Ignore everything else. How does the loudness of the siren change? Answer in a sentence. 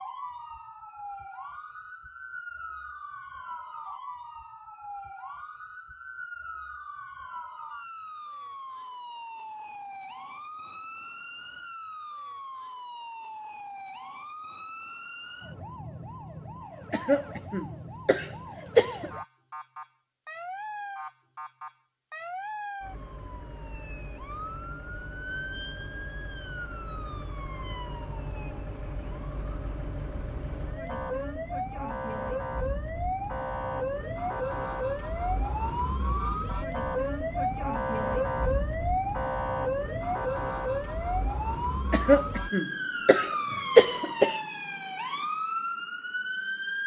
The volume of the siren goes up.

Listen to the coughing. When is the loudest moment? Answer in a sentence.
The volume of the coughing peaks at 44 seconds.